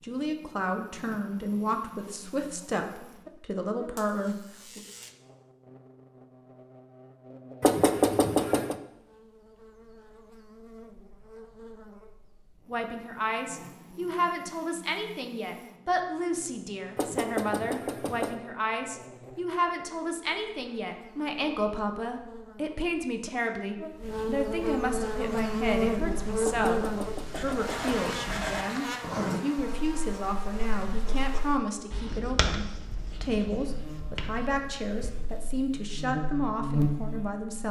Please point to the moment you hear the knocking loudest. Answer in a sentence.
The loudest moment of the knocking is at 8 seconds.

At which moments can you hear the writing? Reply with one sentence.
You can hear the writing from 25.1 to 35.4 s.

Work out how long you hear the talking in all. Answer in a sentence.
You can hear the talking for 30 seconds altogether.